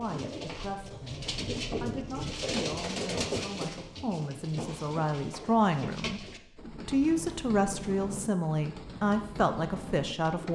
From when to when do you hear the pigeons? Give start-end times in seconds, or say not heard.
0.0-10.5.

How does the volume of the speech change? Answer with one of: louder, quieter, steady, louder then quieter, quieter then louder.
louder.